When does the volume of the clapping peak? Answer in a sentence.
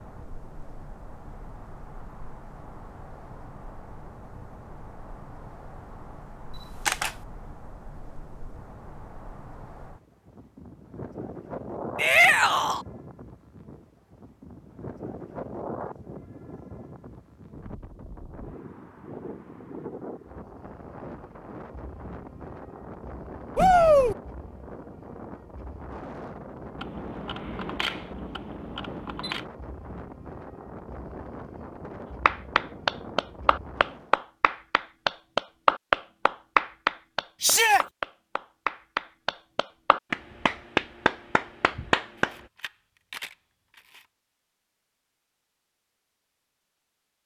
The loudest moment of the clapping is at 36 seconds.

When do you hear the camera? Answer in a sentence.
The camera can be heard from 6.5 to 7.2 s, from 26.8 to 29.4 s and from 42.1 to 44.0 s.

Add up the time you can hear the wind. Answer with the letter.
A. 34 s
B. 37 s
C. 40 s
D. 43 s
A.